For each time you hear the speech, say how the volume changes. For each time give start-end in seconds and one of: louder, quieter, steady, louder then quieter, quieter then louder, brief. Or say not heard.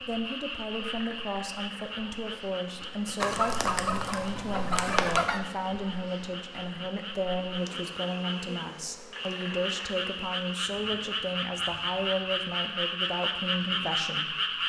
0.0-14.6 steady.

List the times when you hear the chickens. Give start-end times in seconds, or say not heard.
3.2-5.4.